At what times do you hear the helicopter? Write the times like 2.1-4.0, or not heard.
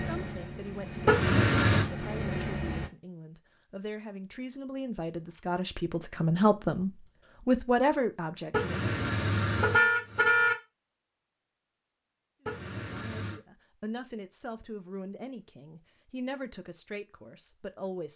0.0-2.9.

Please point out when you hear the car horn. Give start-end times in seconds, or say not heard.
1.1-1.9, 8.5-10.6, 12.4-13.4.